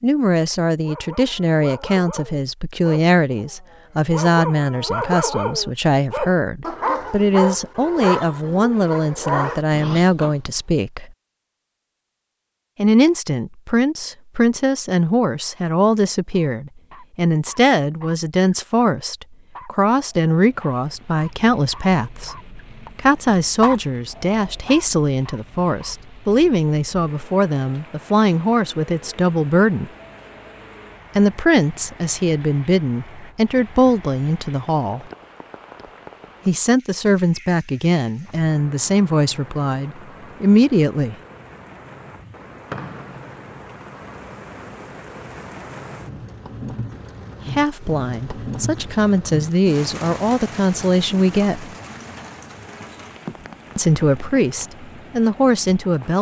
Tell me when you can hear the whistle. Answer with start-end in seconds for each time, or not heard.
42.6-43.4.